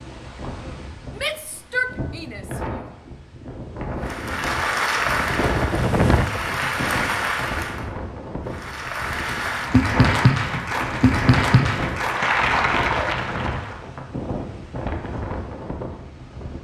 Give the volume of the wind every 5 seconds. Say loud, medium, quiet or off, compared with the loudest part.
medium, loud, loud, medium.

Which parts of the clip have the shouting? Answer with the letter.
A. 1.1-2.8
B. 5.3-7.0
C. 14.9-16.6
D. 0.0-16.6
A.